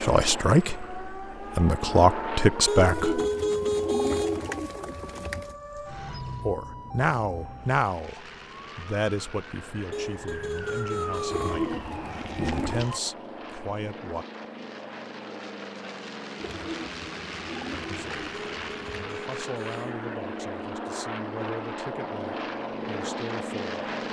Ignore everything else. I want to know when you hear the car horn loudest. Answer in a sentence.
The loudest moment of the car horn is at 4 seconds.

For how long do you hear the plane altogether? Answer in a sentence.
You can hear the plane for 19 seconds altogether.